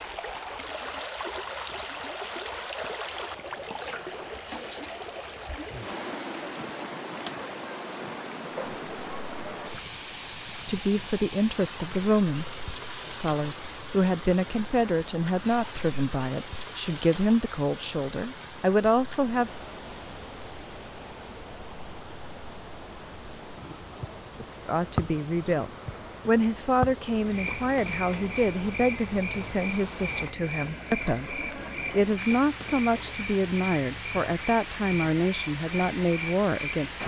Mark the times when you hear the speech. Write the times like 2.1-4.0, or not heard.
10.6-19.5, 24.6-37.0.